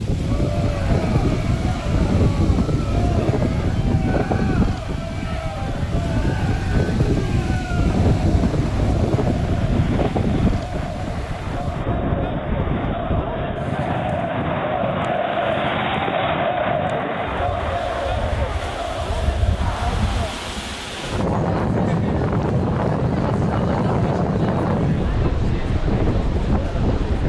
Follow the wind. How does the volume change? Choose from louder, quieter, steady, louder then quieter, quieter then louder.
quieter then louder.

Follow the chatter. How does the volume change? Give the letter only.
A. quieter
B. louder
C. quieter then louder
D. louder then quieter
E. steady
D.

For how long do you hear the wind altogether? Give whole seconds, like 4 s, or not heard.
27 s.